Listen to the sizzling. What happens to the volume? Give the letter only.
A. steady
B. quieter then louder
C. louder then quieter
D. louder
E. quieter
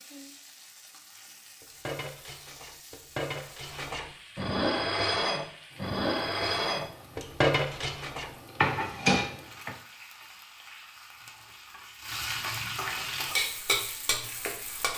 D.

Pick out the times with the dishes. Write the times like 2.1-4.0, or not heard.
1.6-9.8.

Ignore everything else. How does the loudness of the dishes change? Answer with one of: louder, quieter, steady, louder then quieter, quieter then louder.
louder.